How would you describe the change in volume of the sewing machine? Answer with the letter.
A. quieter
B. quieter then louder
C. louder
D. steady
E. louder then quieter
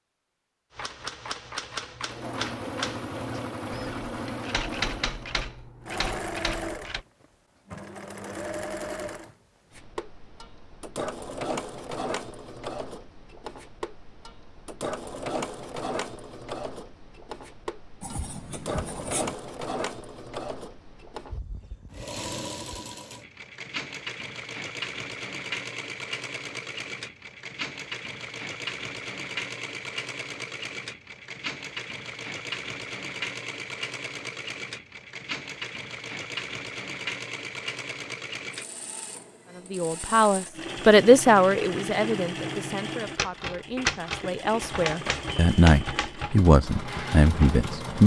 D.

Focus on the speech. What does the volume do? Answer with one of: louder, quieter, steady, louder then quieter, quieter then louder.
quieter then louder.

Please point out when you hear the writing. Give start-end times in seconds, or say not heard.
18.0-19.4.